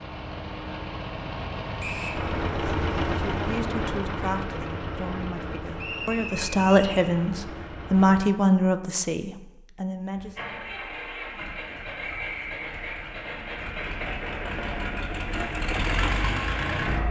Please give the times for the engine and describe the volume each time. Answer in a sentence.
You can hear the engine from 0.0 to 8.2 s, getting louder then quieter; and from 10.1 to 17.0 s, getting louder.